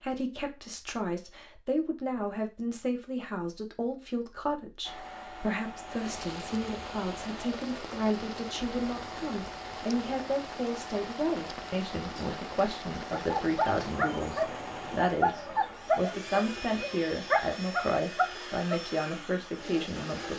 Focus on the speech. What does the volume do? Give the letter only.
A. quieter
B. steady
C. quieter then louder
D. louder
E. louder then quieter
B.